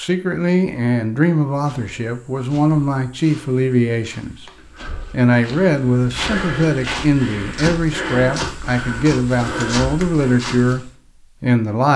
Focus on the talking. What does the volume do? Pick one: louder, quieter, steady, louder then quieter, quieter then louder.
steady.